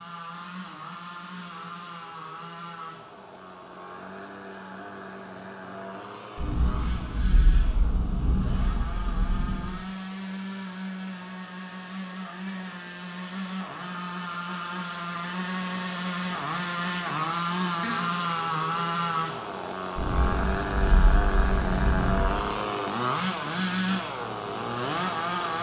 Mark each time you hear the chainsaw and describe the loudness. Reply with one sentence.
The chainsaw can be heard from 0.0 to 25.5 s, getting louder.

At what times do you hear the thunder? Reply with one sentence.
You can hear the thunder from 6.3 to 9.8 s and from 19.9 to 22.4 s.